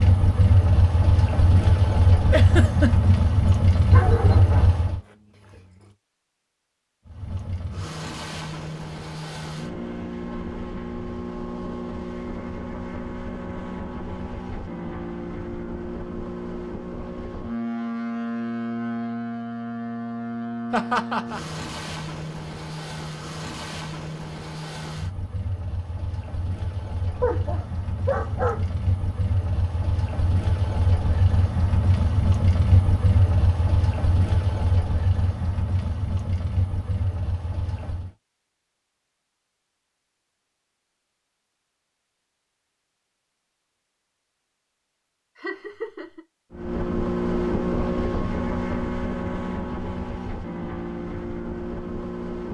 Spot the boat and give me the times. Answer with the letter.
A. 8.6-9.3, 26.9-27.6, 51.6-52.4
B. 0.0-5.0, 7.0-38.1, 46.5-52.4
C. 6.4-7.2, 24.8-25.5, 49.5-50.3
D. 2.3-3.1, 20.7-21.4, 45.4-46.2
B.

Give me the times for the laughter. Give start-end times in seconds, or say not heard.
2.3-3.1, 20.7-21.4, 45.4-46.2.